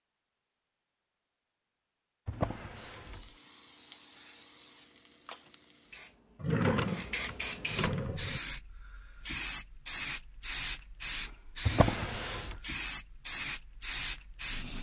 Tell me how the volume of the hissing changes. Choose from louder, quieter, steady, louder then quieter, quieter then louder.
louder.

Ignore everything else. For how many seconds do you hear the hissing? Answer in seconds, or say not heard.
12 s.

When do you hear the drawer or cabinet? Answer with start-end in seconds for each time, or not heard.
2.2-3.3, 6.3-8.4, 11.7-12.6.